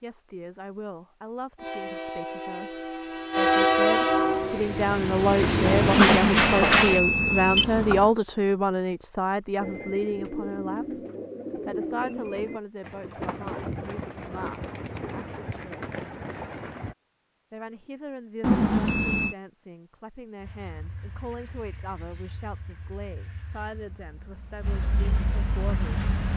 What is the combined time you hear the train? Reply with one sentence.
You can hear the train for 11 seconds altogether.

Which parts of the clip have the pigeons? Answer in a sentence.
The pigeons can be heard from 9.6 to 16.9 s.